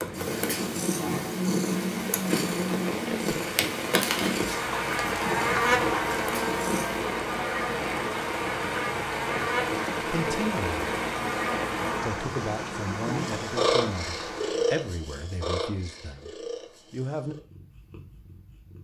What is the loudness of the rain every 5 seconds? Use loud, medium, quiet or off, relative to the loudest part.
loud, loud, loud, off.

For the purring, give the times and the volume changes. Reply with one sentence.
You can hear the purring from 0.0 to 7.0 s, getting quieter; and from 13.1 to 18.7 s, getting quieter.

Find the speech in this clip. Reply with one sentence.
The speech can be heard from 10.0 to 10.8 s and from 12.0 to 17.4 s.